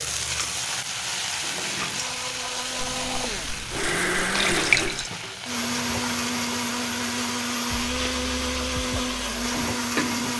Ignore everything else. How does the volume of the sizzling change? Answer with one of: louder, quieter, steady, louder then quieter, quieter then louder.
quieter.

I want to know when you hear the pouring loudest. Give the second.
5 s.